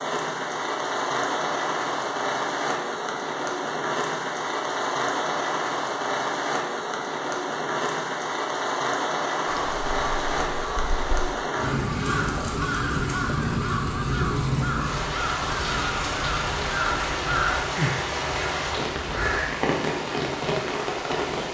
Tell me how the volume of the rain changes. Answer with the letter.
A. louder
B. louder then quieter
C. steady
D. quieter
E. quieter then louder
C.